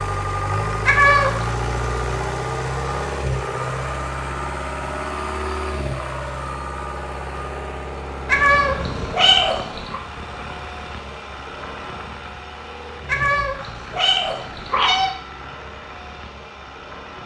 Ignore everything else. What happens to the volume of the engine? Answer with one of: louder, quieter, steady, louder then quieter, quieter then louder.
quieter.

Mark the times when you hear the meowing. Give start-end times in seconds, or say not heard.
0.8-1.4, 8.2-10.0, 13.1-15.1.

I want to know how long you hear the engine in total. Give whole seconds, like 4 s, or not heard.
17 s.